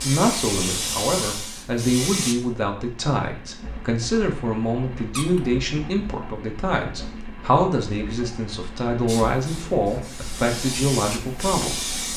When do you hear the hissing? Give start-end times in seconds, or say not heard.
0.0-2.4, 9.1-12.1.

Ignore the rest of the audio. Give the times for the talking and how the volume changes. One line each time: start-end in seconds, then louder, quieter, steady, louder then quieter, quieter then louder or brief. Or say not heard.
0.0-11.8 steady.